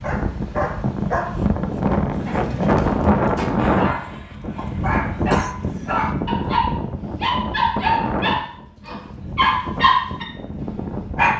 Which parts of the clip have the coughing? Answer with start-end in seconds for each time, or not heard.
5.3-6.1.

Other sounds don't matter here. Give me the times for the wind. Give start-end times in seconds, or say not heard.
0.0-11.3.